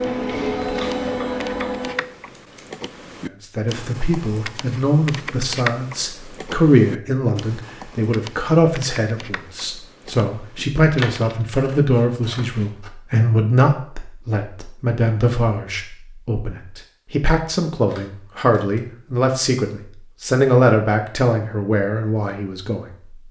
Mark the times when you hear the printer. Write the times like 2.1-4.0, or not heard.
0.0-2.0.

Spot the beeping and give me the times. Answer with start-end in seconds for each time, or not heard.
not heard.